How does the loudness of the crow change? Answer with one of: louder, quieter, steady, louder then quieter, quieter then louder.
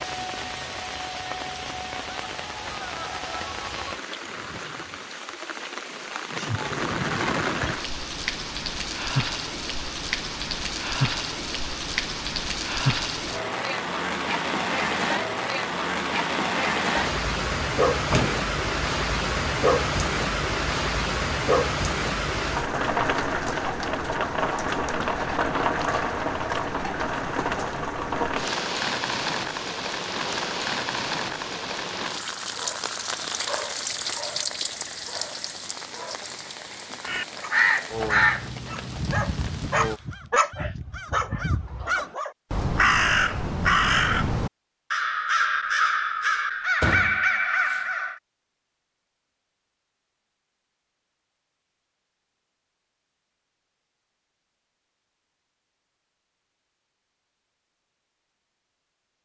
quieter then louder.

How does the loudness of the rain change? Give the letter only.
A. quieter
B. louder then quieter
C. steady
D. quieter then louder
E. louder
B.